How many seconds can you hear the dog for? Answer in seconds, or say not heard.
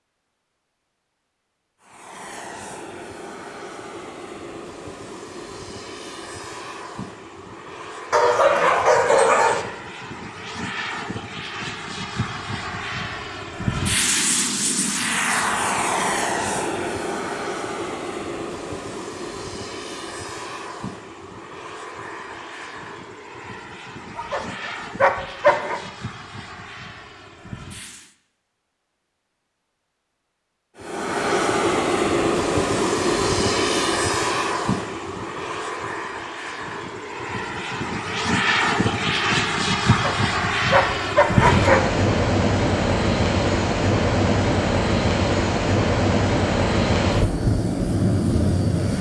5 s.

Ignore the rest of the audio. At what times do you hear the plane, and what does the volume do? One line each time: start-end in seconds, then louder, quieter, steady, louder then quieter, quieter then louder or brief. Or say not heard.
1.8-28.1 louder then quieter
30.8-48.9 quieter then louder.